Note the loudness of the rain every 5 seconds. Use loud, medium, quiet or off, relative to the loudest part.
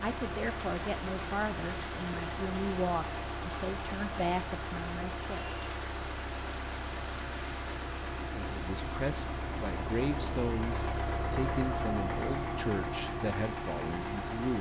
loud, loud, medium.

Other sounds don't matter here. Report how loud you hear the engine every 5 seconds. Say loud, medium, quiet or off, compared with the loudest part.
medium, medium, loud.